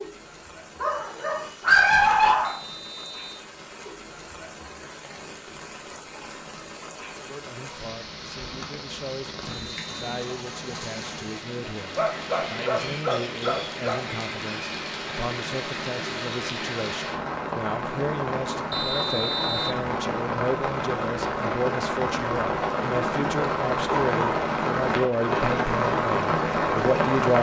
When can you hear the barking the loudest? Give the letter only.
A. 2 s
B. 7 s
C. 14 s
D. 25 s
A.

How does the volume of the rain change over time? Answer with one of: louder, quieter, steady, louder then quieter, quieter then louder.
louder.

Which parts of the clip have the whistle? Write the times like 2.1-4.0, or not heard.
2.4-3.5, 9.4-10.2, 18.7-19.8.